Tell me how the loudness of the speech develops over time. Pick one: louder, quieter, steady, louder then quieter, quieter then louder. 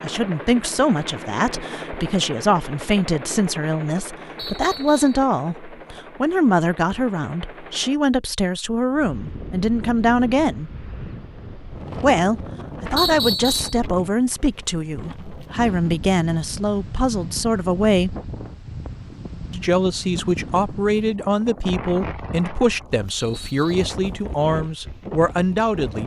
steady.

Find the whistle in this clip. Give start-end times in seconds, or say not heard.
4.3-5.2, 12.9-13.8, 23.1-23.7.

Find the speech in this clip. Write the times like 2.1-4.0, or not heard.
0.0-10.7, 12.0-18.1, 19.5-26.0.